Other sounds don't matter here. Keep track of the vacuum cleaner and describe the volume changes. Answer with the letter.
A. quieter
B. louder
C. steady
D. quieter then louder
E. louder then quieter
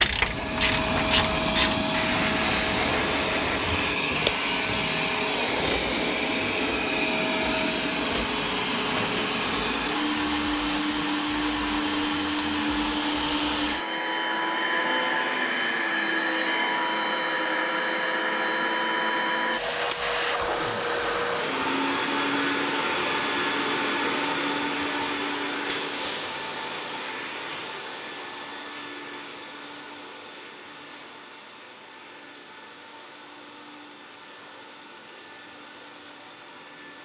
A.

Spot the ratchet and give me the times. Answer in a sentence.
The ratchet can be heard from 0.0 to 5.5 s.